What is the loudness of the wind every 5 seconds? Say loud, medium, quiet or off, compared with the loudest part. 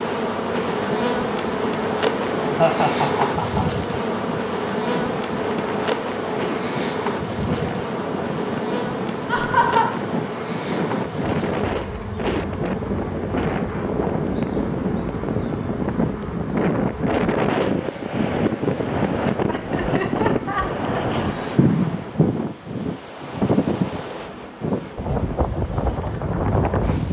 medium, medium, loud, loud, loud, loud.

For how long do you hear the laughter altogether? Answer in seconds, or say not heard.
4 s.